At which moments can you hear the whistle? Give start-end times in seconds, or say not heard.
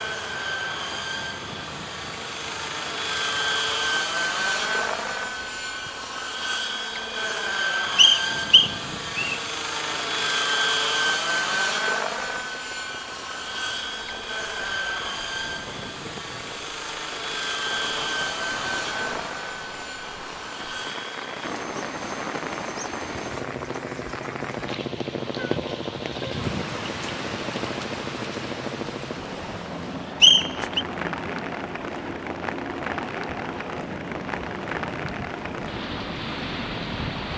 8.0-9.4, 30.2-30.9.